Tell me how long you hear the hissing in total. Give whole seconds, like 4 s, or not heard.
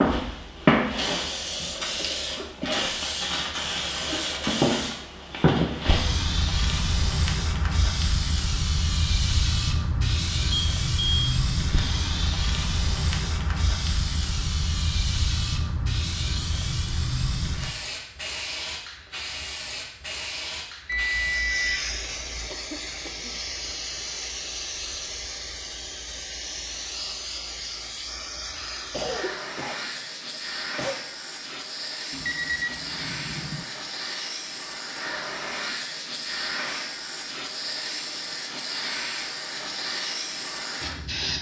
41 s.